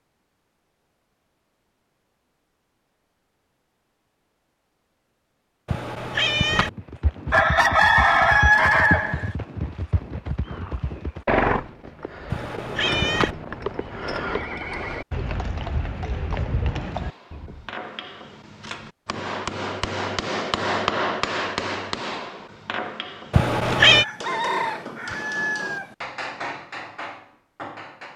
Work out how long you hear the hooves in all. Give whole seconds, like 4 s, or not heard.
11 s.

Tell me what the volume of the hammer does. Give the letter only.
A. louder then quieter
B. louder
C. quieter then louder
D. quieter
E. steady
A.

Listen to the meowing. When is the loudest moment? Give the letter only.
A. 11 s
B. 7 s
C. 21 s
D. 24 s
D.